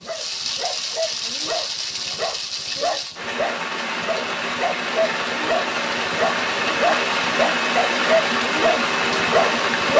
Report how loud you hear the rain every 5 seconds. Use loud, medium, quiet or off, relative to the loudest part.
medium, loud.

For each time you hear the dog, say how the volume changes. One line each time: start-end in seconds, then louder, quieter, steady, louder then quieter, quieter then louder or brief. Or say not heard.
0.0-9.9 louder.